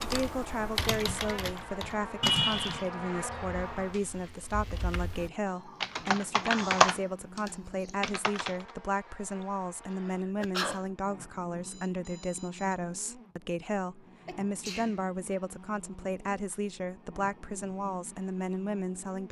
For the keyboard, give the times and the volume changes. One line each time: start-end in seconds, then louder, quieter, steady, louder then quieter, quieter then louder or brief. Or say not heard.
0.0-8.7 quieter then louder.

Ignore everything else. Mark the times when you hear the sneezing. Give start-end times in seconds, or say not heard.
2.2-2.9, 9.9-10.8, 14.2-15.0.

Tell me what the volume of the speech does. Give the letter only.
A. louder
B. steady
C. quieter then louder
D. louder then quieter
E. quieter
B.